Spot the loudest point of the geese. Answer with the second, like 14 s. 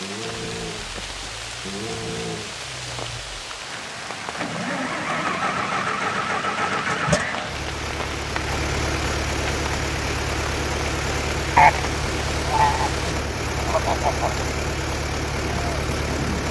12 s.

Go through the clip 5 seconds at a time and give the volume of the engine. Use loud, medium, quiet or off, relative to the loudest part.
medium, loud, loud, loud.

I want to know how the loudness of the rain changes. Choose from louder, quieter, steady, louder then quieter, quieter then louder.
steady.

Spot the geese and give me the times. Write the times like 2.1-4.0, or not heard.
11.6-14.4.